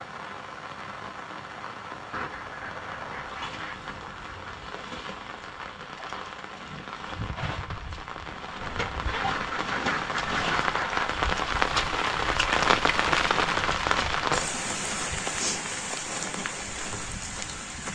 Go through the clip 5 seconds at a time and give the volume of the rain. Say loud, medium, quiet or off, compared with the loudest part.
quiet, medium, loud, medium.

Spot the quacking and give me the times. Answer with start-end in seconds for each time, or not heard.
2.1-4.7, 9.1-11.1.